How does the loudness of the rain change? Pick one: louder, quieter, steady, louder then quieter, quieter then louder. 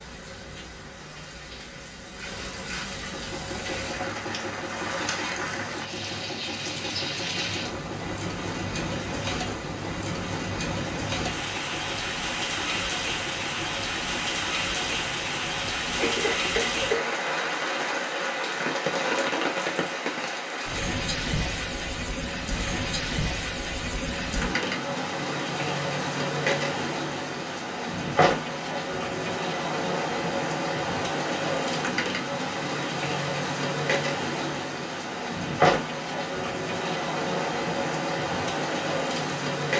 louder.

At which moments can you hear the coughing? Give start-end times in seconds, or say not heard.
15.9-17.2.